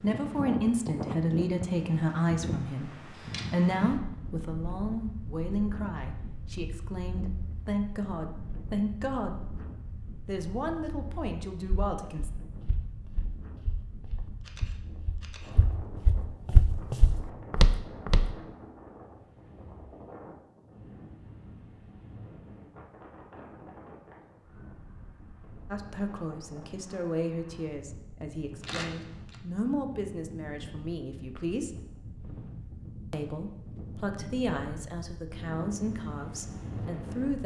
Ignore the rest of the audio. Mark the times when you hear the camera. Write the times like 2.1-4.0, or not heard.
3.0-3.5, 14.4-15.6, 28.6-29.4.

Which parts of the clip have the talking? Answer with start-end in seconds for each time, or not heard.
0.0-2.9, 3.5-9.4, 10.2-12.3, 25.7-31.7, 33.1-37.4.